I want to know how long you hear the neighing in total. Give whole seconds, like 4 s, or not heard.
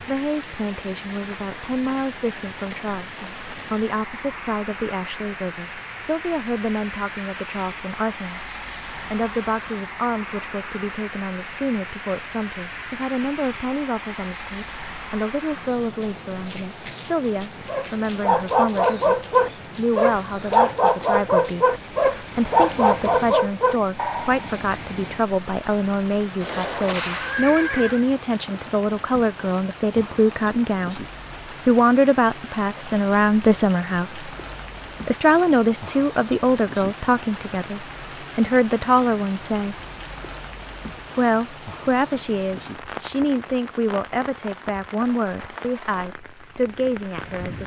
2 s.